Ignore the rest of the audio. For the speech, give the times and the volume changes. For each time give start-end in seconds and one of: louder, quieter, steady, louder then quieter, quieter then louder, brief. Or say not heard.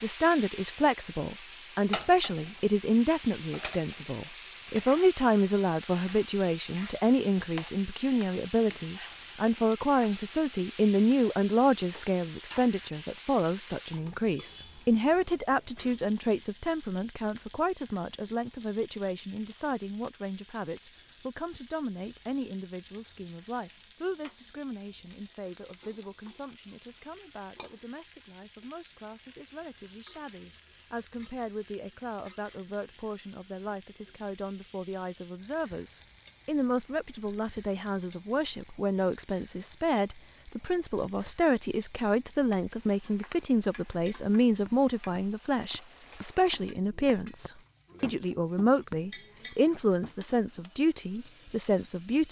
0.0-52.2 quieter then louder.